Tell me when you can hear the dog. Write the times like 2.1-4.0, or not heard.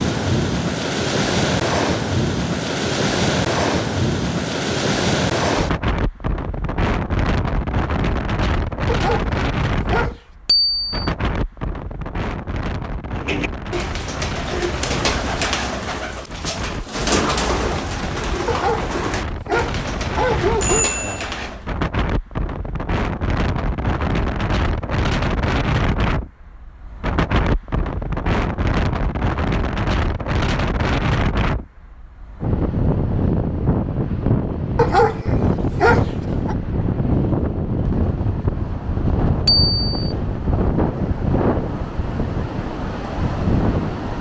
8.8-10.2, 18.4-20.9, 34.8-36.5.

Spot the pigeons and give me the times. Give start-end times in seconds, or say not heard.
13.2-21.7.